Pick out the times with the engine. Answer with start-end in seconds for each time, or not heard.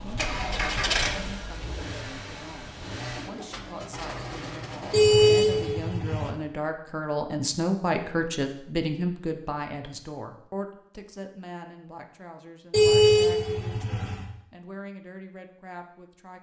0.0-5.7.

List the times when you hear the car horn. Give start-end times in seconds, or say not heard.
4.9-6.3, 12.7-14.2.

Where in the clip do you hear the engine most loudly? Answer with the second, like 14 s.
1 s.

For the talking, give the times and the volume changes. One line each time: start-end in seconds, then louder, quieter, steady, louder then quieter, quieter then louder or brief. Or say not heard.
0.0-16.3 louder then quieter.